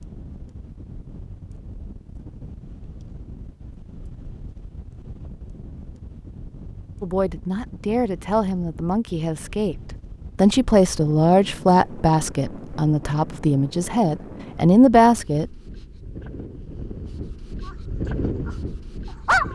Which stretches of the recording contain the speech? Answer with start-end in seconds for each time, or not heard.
7.0-9.8, 10.3-15.6.